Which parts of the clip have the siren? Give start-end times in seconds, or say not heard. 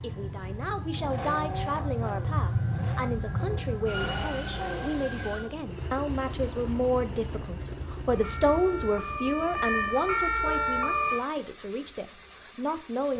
0.0-5.5, 8.1-11.2.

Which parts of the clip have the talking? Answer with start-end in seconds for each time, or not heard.
0.0-13.1.